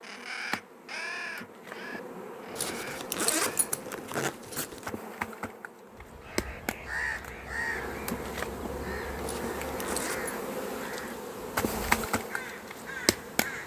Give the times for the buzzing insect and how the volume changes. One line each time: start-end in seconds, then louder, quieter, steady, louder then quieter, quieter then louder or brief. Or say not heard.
0.0-13.6 louder.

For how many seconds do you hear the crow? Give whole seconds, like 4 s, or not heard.
11 s.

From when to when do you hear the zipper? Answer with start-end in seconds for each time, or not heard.
2.5-4.9, 9.2-10.3.